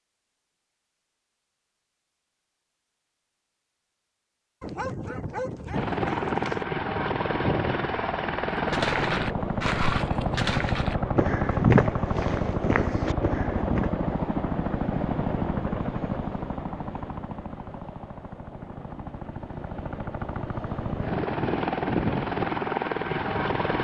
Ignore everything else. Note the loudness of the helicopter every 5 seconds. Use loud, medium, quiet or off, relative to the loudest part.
off, loud, loud, medium, loud.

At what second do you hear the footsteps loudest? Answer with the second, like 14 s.
12 s.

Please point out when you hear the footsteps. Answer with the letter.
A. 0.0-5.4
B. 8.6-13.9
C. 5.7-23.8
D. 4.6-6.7
B.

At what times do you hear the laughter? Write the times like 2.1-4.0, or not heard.
not heard.